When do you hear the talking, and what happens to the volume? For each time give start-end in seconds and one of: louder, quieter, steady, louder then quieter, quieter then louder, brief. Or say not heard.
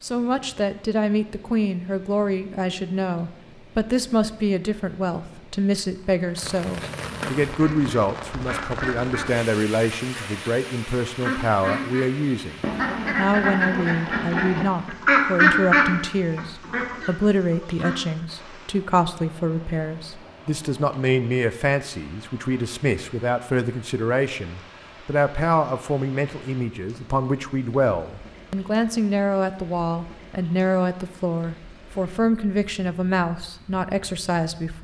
0.0-34.7 steady.